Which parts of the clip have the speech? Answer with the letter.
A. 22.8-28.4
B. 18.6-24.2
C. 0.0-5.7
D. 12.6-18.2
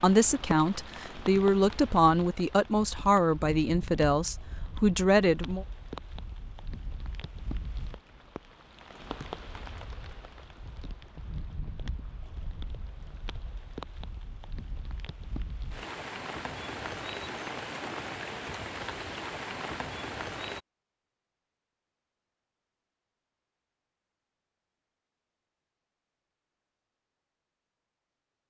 C.